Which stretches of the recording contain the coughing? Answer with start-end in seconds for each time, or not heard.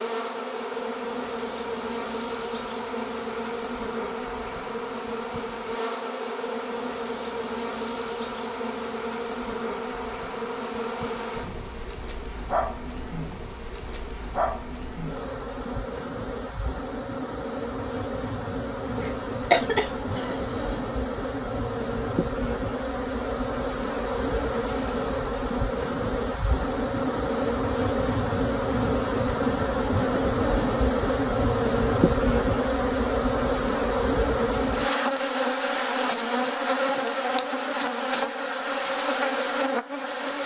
18.9-20.8.